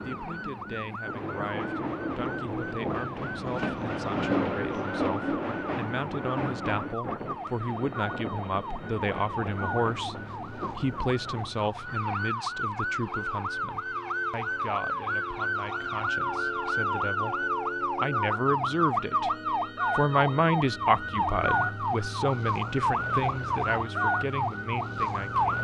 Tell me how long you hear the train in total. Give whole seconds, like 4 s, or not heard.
12 s.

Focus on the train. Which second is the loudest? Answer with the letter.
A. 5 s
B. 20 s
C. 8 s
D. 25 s
A.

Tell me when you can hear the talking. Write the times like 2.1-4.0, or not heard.
0.0-19.4, 19.9-25.5.